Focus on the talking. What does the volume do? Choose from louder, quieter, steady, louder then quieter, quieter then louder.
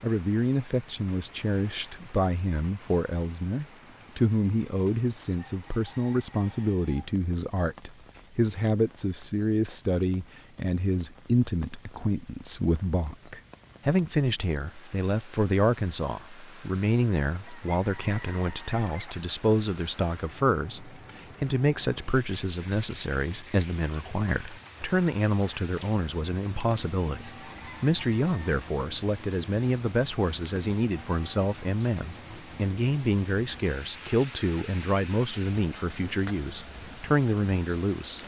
steady.